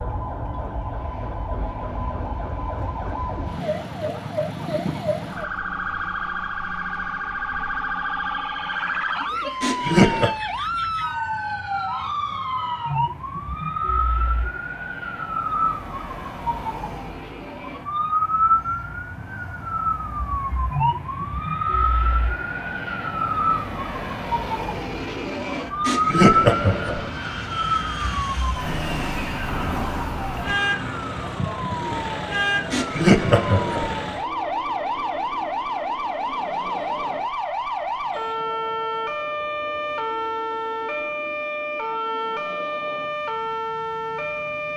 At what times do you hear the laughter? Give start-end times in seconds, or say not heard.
9.6-10.3, 25.9-27.1, 32.7-34.0.